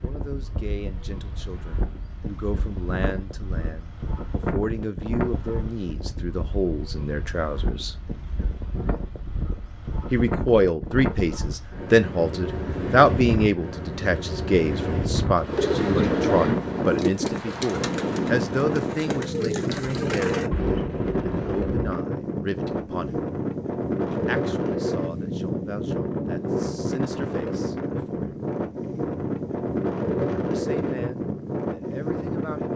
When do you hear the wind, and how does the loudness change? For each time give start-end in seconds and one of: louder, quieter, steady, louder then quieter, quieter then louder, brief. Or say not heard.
0.0-32.7 louder.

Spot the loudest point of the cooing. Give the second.
16 s.